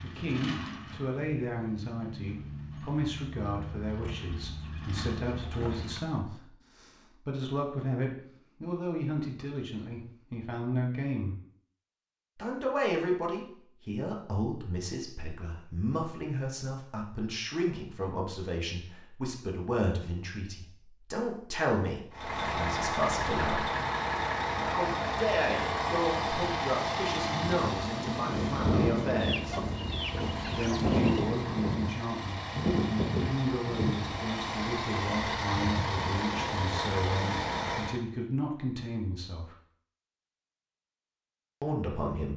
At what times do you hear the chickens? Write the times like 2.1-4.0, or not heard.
4.0-6.0, 29.2-31.2.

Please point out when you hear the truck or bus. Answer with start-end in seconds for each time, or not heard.
0.0-6.0, 22.1-38.0.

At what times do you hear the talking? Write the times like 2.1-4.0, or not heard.
0.0-11.3, 12.3-23.7, 24.6-29.6, 30.6-39.5, 41.6-42.3.